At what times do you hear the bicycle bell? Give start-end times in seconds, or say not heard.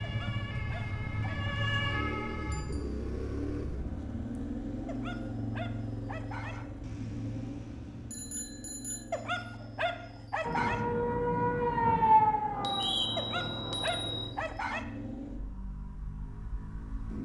2.5-3.0, 6.8-9.1, 12.5-14.3.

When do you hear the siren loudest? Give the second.
12 s.